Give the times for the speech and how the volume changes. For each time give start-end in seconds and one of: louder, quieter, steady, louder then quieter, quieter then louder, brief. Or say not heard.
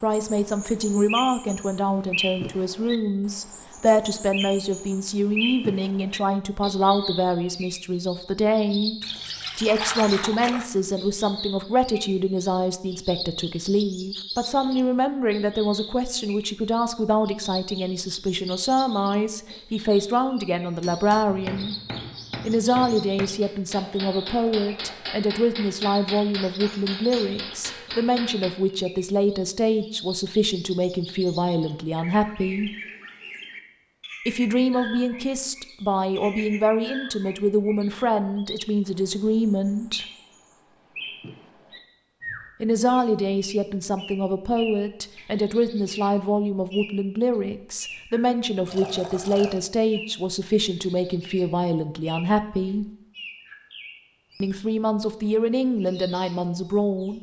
0.0-21.8 steady
22.4-32.7 steady
34.2-40.0 steady
42.6-52.9 steady
54.4-57.1 brief.